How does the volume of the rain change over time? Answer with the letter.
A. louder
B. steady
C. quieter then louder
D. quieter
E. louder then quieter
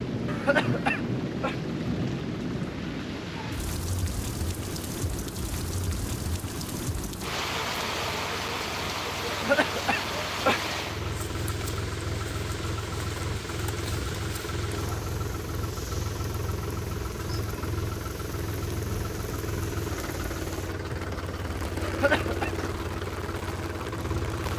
D.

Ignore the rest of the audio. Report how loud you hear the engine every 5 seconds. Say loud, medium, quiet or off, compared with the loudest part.
medium, medium, loud, loud, loud.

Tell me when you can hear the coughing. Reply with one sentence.
The coughing can be heard from 0.2 to 1.6 s, from 9.3 to 10.6 s and from 21.8 to 22.5 s.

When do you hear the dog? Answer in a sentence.
You can't hear the dog here.